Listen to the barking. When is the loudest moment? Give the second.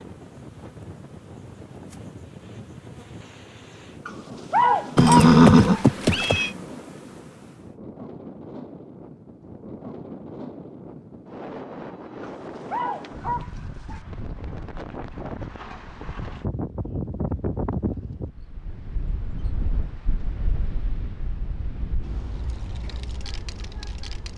5 s.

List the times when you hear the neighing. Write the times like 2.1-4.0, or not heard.
5.0-6.5.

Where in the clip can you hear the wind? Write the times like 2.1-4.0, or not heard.
0.0-24.3.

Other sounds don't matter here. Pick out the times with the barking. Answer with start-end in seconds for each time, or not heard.
4.0-5.8, 12.2-14.0.